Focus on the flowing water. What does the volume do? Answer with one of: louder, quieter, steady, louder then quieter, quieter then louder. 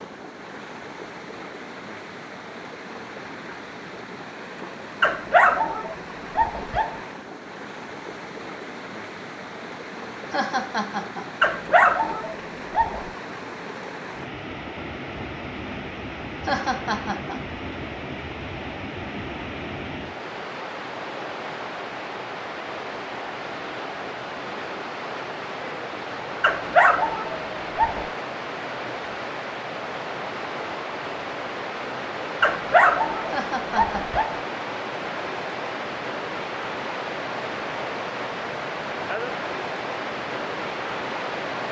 louder.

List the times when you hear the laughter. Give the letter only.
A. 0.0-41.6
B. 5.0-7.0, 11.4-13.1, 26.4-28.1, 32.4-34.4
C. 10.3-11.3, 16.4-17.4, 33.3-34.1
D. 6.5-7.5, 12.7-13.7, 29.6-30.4
C.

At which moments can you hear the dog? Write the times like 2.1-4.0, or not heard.
5.0-7.0, 11.4-13.1, 26.4-28.1, 32.4-34.4.